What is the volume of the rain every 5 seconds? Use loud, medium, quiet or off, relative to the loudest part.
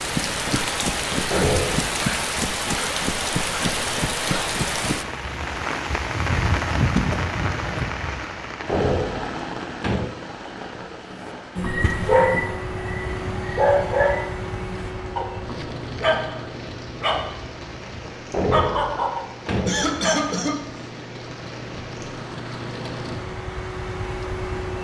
loud, loud, quiet, quiet, quiet.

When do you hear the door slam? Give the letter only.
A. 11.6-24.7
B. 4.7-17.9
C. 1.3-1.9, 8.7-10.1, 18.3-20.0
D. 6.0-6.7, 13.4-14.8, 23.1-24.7
C.